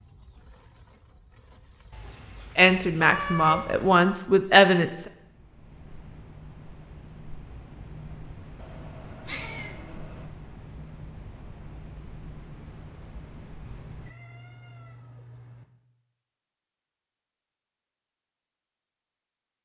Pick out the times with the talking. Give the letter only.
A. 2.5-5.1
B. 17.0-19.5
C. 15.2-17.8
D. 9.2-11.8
A.